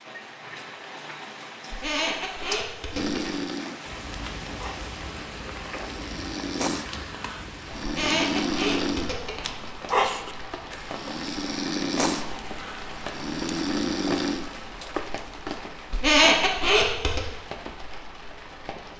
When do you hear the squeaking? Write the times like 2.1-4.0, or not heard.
1.7-3.4, 7.8-9.5, 15.9-17.2.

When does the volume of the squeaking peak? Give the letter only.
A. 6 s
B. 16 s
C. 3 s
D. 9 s
B.